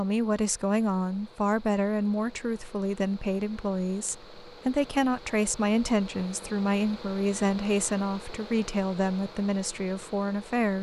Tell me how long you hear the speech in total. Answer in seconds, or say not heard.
11 s.